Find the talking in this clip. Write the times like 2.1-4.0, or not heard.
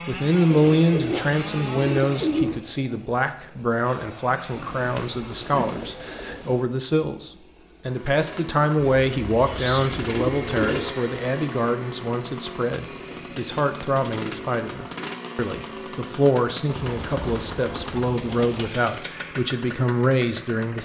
0.1-20.8.